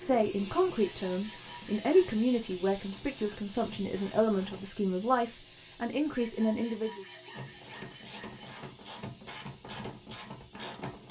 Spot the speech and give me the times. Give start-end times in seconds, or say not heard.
0.0-7.0.